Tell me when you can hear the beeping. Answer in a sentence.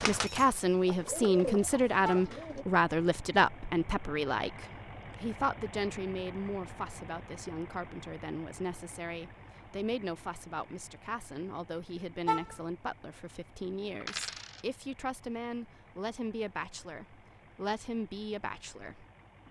You can't hear the beeping here.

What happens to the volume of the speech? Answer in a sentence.
The loudness of the speech goes down.